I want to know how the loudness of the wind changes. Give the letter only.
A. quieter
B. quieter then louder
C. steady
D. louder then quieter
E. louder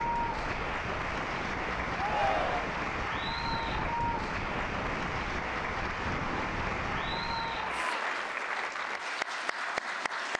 C.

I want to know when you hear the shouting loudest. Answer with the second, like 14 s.
2 s.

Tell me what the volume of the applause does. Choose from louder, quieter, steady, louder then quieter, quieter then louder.
steady.